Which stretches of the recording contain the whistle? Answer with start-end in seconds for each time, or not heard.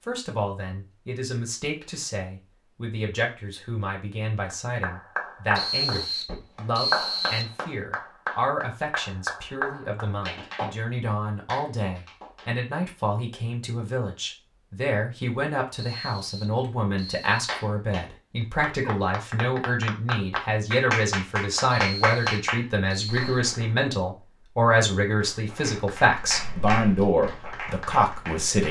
5.5-7.5, 15.8-17.5, 21.6-23.4.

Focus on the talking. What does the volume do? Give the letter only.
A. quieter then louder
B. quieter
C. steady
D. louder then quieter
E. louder
E.